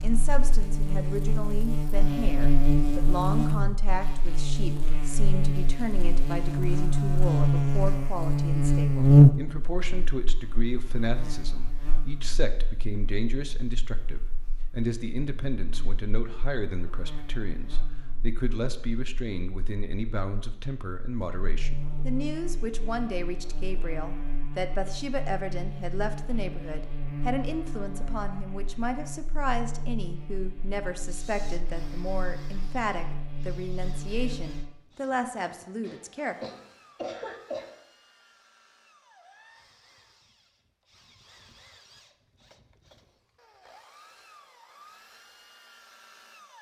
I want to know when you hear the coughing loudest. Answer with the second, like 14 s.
37 s.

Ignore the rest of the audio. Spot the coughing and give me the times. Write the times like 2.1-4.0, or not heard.
35.6-37.6.